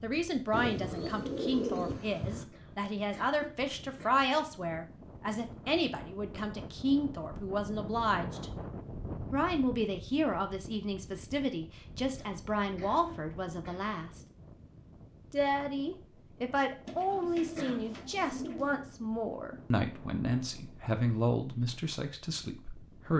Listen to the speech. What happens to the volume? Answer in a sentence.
The volume of the speech stays about the same.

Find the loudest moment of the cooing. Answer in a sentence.
The volume of the cooing peaks at 2 seconds.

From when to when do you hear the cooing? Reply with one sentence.
The cooing can be heard from 0.5 to 2.5 s and from 16.9 to 18.9 s.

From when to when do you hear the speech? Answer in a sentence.
The speech can be heard from 0.0 to 8.5 s, from 9.3 to 14.2 s and from 15.3 to 23.1 s.